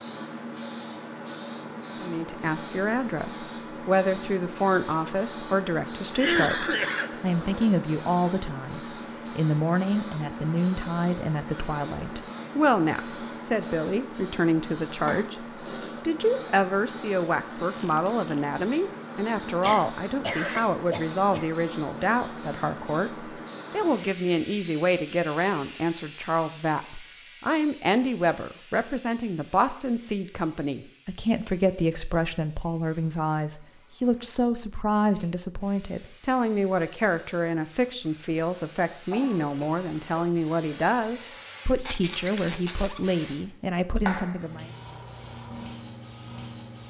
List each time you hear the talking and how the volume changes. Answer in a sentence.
The talking can be heard from 2.0 to 44.7 s, at a steady volume.